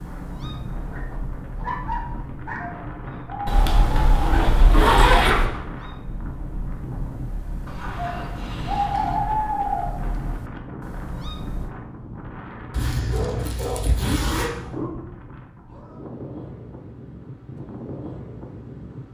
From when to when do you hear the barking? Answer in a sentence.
The barking can be heard from 0.8 to 2.8 s, from 7.7 to 9.2 s and from 13.1 to 15.0 s.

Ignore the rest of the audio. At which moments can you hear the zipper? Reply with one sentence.
You can hear the zipper from 3.5 to 5.5 s and from 12.7 to 14.5 s.